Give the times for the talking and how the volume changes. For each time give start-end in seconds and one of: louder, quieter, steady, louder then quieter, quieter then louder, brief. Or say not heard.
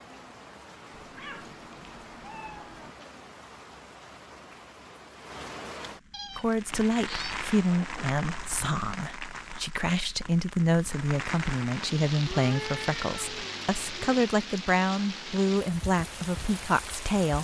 6.3-17.4 steady.